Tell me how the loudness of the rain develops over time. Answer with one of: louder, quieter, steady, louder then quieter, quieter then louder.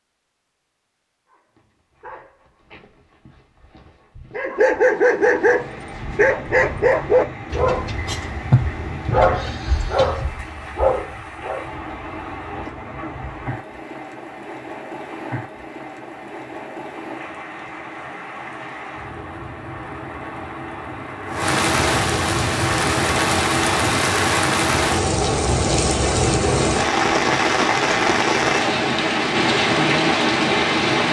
louder.